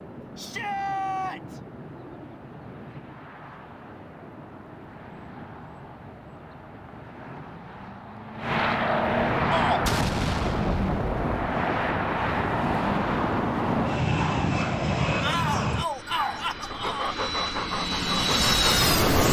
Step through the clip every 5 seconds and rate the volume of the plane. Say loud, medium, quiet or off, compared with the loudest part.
quiet, loud, loud, loud.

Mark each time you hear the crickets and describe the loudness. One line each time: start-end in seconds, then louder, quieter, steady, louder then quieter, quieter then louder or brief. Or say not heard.
not heard.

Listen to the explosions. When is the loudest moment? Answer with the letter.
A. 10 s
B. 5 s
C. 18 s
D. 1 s
A.